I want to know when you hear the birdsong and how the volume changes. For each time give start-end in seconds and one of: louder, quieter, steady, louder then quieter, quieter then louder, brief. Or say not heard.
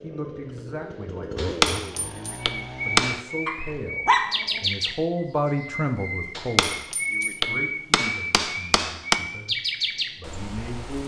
2.4-11.0 steady.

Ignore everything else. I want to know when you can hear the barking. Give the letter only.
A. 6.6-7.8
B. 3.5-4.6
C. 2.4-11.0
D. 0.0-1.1
B.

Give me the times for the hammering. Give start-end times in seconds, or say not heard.
1.4-3.2, 6.3-9.2.